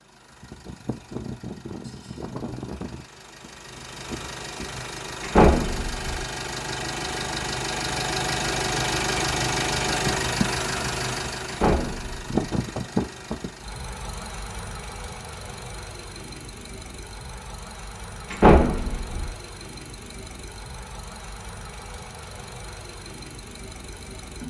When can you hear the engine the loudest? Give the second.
10 s.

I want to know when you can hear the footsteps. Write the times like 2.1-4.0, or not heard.
not heard.